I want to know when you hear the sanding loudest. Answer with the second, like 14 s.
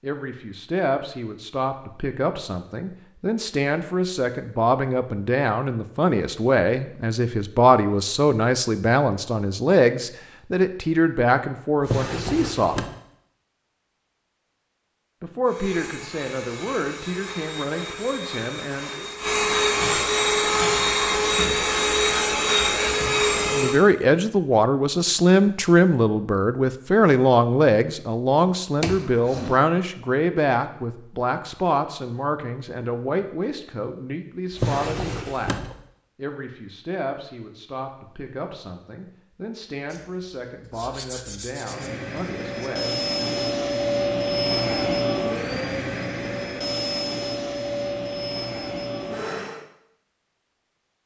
41 s.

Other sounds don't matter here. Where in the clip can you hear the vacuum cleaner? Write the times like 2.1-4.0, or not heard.
15.4-23.8, 41.5-49.6.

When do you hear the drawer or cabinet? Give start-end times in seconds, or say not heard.
11.8-12.9, 28.8-29.6, 34.5-35.8.